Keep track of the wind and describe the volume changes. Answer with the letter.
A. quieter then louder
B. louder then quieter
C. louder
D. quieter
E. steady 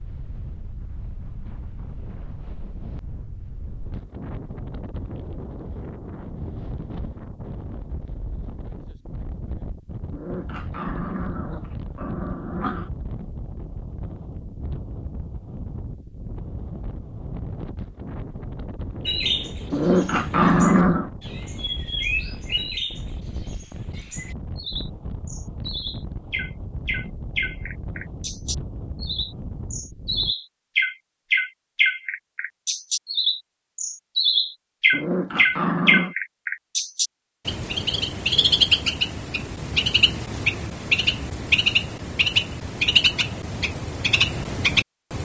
E.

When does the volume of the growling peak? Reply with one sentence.
The volume of the growling peaks at 21 seconds.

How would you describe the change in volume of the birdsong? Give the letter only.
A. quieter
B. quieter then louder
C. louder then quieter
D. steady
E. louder
E.